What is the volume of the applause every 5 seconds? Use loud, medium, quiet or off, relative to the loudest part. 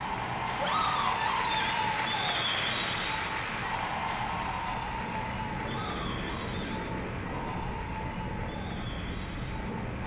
loud, medium.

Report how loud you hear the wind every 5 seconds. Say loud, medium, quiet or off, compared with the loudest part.
medium, loud.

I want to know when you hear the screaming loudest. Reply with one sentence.
The volume of the screaming peaks at 1 second.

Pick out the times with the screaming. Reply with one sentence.
The screaming can be heard from 0.6 to 1.9 s and from 5.6 to 6.8 s.